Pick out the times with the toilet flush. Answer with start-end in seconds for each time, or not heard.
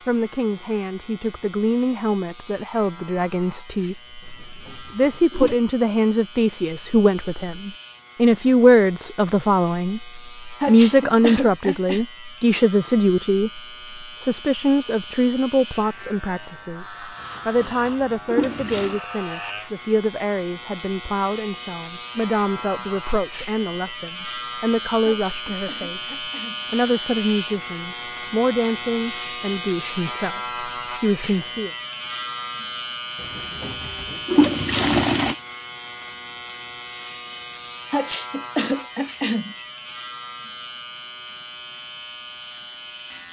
4.2-5.6, 17.2-19.0, 33.2-35.4.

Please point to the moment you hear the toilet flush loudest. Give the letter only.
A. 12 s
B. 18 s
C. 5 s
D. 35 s
D.